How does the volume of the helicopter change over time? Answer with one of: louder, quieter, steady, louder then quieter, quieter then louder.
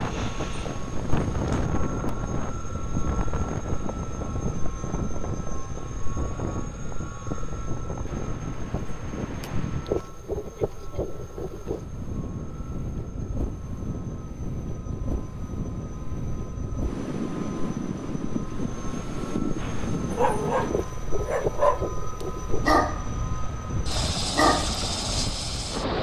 quieter then louder.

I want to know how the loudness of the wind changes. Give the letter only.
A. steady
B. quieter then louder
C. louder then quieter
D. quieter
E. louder
A.